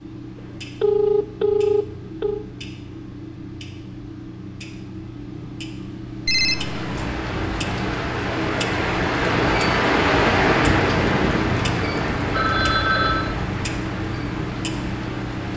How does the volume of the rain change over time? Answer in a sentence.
The loudness of the rain goes up, then down.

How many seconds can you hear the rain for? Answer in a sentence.
You can hear the rain for 9 seconds altogether.